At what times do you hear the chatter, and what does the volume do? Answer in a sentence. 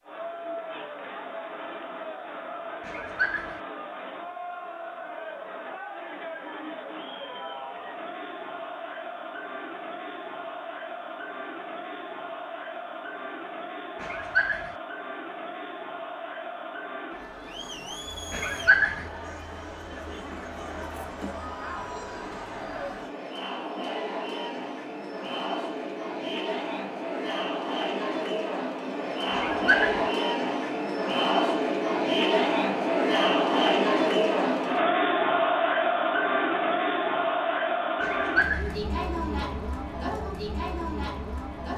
You can hear the chatter from 0.0 to 41.7 s, getting louder.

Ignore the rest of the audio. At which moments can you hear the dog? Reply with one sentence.
You can hear the dog from 2.9 to 3.5 s, from 14.0 to 14.8 s, from 18.3 to 19.1 s, from 29.3 to 30.1 s and from 38.0 to 38.8 s.